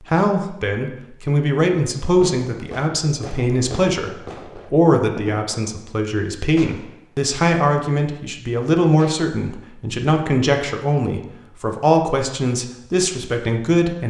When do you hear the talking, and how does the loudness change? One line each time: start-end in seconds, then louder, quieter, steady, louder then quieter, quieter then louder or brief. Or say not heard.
0.0-14.0 steady.